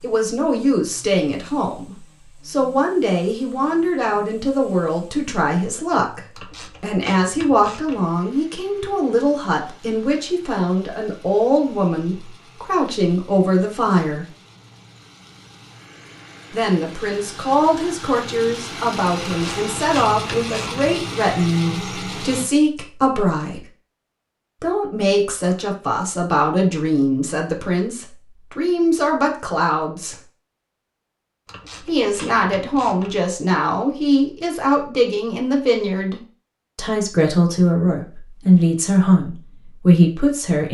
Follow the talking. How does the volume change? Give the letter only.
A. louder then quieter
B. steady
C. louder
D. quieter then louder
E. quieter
B.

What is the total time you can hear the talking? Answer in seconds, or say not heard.
35 s.